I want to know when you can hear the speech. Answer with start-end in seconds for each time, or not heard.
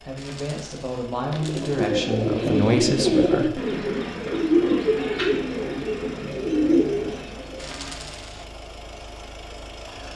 0.1-3.6.